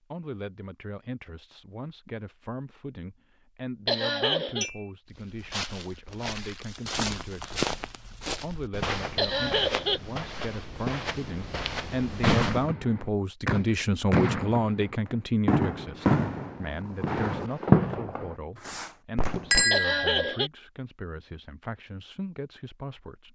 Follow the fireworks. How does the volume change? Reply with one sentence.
The loudness of the fireworks goes up, then down.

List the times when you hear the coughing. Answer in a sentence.
The coughing can be heard from 3.9 to 4.7 s, from 9.2 to 10.0 s and from 19.7 to 20.5 s.